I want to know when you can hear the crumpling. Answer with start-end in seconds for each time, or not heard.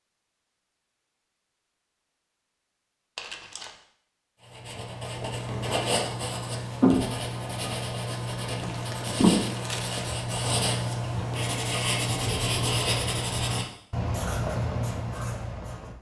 3.1-3.8, 8.6-10.2.